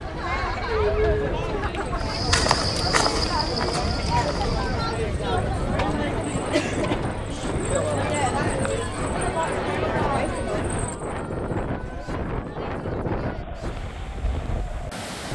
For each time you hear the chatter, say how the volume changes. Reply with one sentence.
The chatter can be heard from 0.0 to 15.3 s, getting quieter.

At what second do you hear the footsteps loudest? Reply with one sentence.
The loudest moment of the footsteps is at 2 seconds.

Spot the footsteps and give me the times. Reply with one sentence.
You can hear the footsteps from 1.9 to 4.9 s.